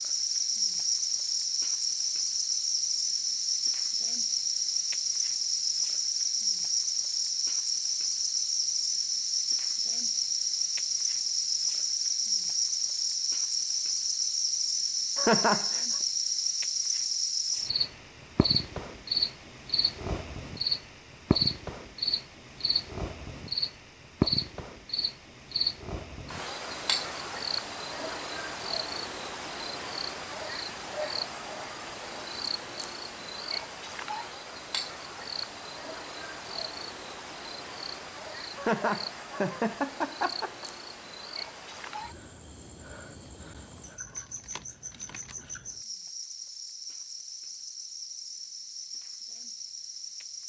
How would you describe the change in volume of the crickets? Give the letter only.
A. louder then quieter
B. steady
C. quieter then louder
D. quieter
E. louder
D.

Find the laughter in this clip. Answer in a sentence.
You can hear the laughter from 15.2 to 15.8 s and from 38.5 to 40.6 s.